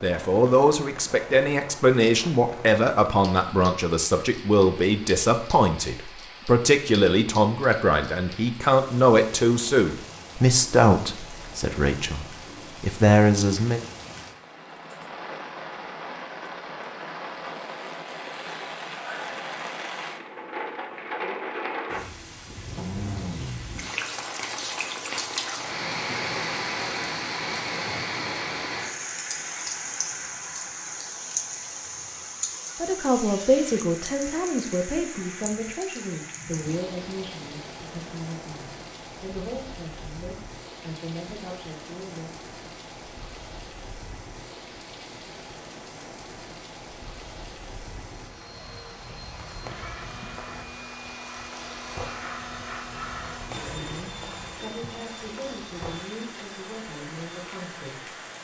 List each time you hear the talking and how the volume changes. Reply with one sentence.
You can hear the talking from 0.0 to 13.8 s, at a steady volume; from 32.8 to 42.4 s, getting quieter; and from 53.5 to 58.1 s, at a steady volume.